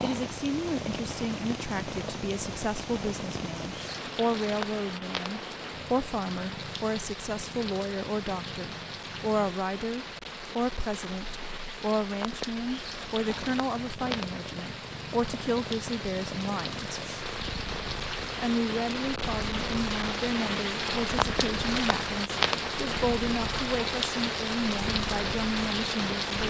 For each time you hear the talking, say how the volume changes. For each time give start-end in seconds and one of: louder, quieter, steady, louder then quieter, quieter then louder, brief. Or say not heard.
0.0-17.1 steady
18.4-26.4 steady.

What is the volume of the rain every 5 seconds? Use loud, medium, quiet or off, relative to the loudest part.
medium, medium, medium, medium, loud, loud.